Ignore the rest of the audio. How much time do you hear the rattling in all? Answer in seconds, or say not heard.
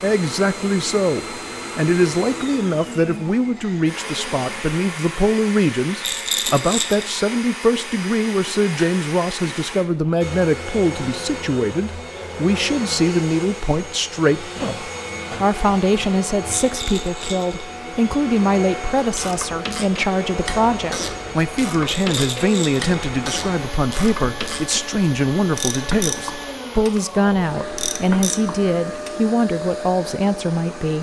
3 s.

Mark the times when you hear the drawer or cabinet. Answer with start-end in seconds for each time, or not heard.
not heard.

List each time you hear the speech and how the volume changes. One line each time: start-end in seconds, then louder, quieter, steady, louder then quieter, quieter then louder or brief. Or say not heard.
0.0-30.9 steady.